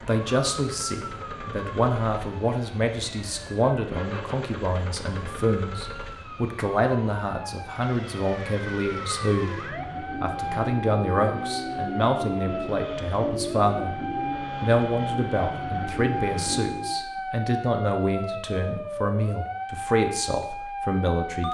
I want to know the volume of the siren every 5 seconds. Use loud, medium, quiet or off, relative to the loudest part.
medium, medium, loud, loud, loud.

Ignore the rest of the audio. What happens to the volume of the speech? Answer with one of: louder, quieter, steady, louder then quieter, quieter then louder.
steady.